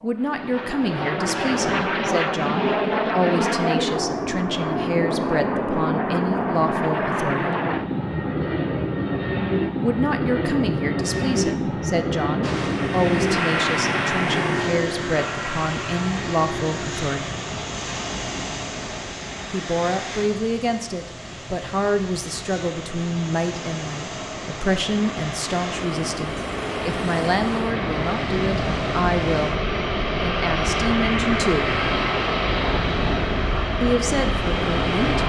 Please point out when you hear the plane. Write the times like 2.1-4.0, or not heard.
0.1-35.2.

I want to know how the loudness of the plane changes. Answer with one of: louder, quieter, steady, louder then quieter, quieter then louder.
quieter then louder.